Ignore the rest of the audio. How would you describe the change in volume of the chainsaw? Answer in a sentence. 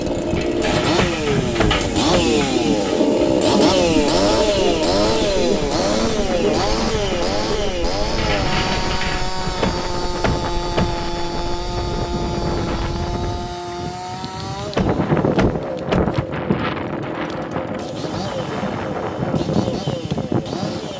The loudness of the chainsaw goes down.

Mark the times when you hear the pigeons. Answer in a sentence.
The pigeons can be heard from 0.2 to 9.2 s.